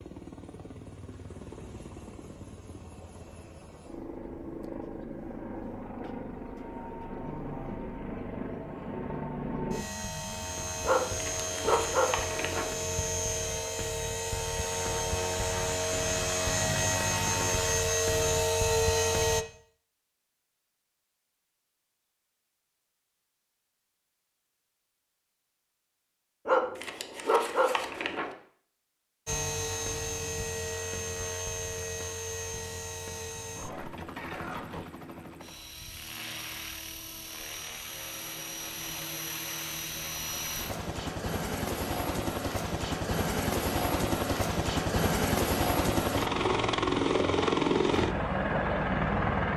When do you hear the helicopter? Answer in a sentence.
The helicopter can be heard from 0.0 to 19.4 s and from 29.2 to 49.5 s.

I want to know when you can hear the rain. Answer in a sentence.
The rain can't be heard in this clip.